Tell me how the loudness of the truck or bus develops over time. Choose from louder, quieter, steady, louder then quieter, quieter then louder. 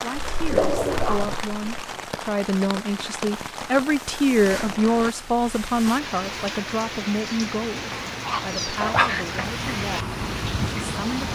louder.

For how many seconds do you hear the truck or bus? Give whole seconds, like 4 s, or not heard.
6 s.